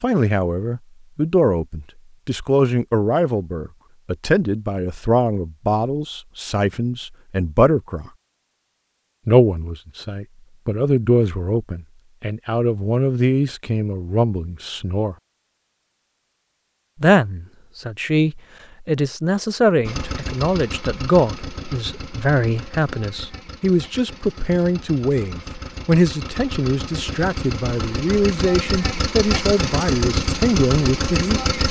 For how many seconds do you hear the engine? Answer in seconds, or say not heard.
12 s.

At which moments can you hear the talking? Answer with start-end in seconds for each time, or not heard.
0.0-8.1, 9.2-15.2, 17.0-31.4.